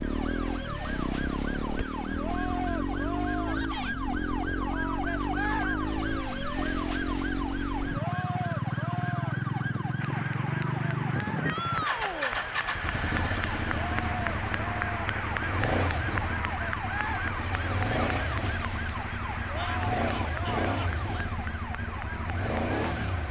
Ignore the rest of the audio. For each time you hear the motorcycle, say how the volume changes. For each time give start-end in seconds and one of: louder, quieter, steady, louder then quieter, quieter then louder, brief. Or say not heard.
0.0-23.2 steady.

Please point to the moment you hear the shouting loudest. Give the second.
12 s.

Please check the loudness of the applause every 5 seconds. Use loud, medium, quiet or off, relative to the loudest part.
off, off, loud, loud, medium.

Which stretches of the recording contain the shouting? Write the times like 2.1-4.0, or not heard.
3.4-4.0, 11.4-12.4, 19.6-21.2.